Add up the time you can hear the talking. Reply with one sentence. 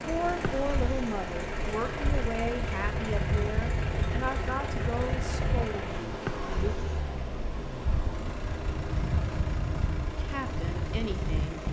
You can hear the talking for 8 seconds altogether.